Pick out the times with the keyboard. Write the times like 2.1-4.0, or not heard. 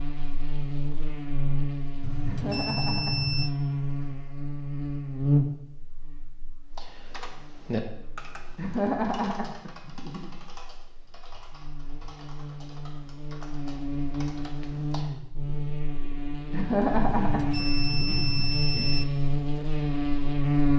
6.8-15.2.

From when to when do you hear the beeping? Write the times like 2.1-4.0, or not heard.
2.0-3.5, 17.1-19.1.